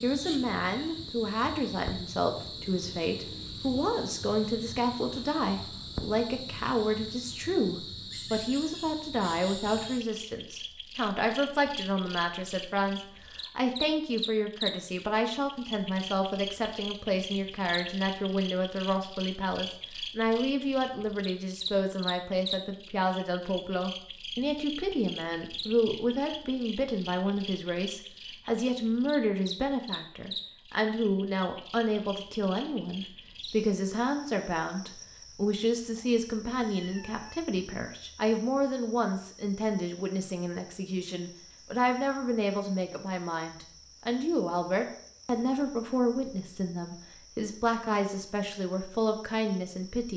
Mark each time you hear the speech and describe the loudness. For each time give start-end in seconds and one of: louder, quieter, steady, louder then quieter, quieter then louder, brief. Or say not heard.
0.0-50.1 steady.